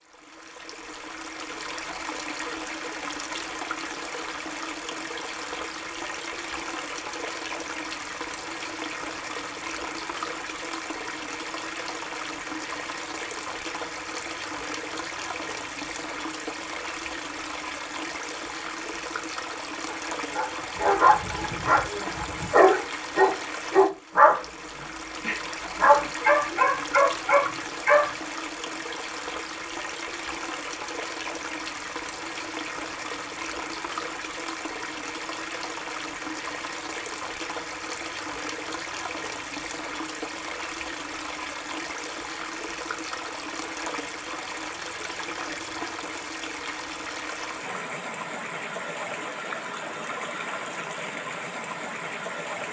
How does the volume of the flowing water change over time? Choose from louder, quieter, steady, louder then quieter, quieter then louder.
steady.